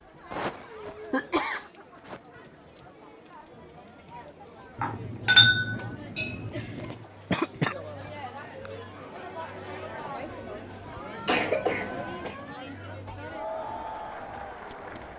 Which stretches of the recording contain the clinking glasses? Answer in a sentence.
The clinking glasses can be heard from 4.8 to 6.9 s.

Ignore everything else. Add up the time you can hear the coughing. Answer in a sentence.
The coughing can be heard for 4 seconds in total.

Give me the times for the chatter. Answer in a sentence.
You can hear the chatter from 0.0 to 15.1 s.